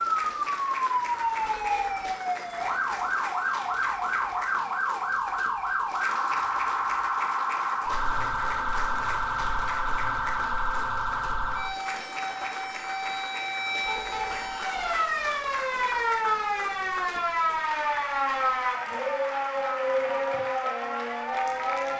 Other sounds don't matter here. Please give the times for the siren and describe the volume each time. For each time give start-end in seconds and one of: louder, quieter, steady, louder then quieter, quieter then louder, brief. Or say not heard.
0.0-21.9 steady.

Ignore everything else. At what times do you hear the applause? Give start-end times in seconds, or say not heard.
0.0-21.9.